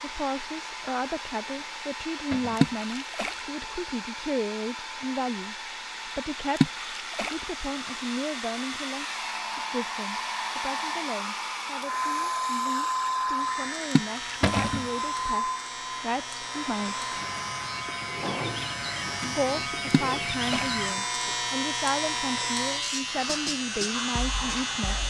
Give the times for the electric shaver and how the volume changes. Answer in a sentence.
The electric shaver can be heard from 13.3 to 25.0 s, getting louder.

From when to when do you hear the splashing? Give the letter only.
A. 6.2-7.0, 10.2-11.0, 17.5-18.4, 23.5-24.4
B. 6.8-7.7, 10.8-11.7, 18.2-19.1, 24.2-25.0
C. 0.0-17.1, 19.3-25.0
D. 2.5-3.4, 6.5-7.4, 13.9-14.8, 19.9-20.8
D.